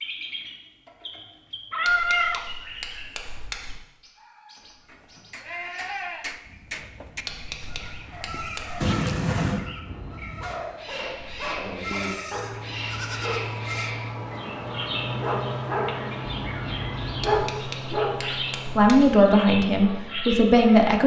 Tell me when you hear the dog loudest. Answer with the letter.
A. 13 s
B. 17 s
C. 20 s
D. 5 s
B.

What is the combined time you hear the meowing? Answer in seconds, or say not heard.
3 s.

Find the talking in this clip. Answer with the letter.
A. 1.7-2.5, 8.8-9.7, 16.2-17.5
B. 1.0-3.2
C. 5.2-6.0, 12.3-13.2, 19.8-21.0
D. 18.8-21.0
D.